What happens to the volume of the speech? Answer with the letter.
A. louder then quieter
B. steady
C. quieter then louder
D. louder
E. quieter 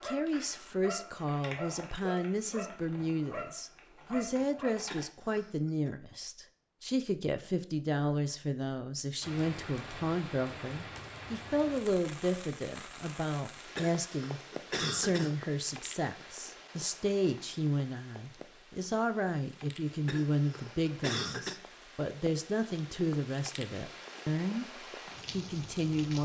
B.